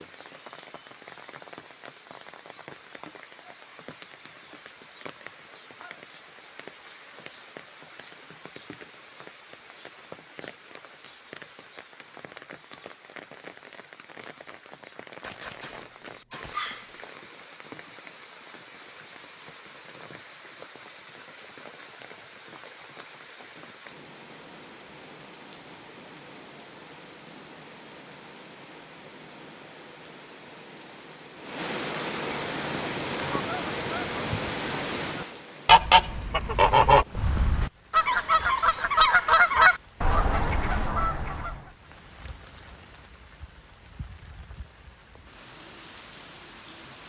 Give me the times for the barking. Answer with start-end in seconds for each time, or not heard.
15.2-17.1.